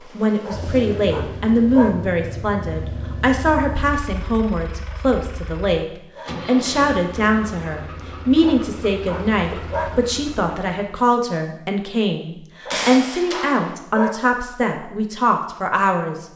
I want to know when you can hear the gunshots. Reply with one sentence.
You can hear the gunshots from 12.7 to 13.8 s.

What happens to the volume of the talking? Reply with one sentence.
The volume of the talking stays about the same.